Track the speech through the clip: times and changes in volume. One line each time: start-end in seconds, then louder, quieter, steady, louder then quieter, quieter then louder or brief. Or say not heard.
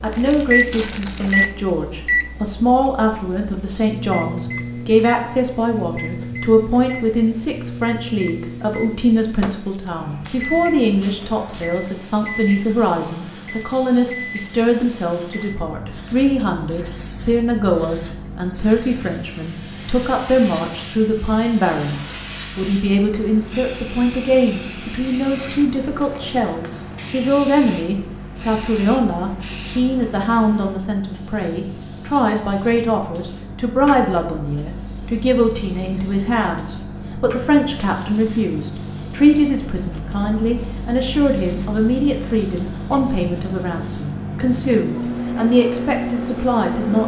0.0-47.0 steady.